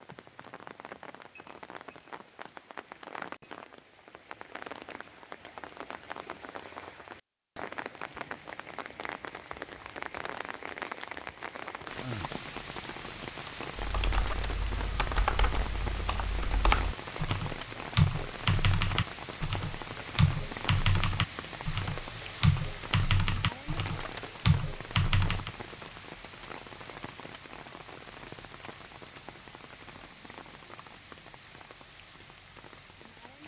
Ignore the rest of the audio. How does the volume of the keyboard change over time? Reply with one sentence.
The loudness of the keyboard goes up.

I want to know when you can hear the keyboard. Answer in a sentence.
You can hear the keyboard from 13.8 to 25.5 s.